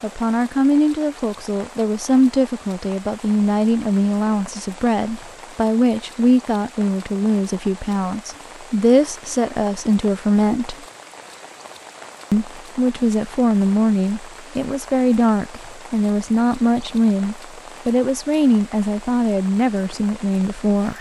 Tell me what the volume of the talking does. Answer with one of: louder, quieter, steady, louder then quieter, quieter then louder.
steady.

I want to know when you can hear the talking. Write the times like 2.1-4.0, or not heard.
0.0-10.8, 12.3-20.9.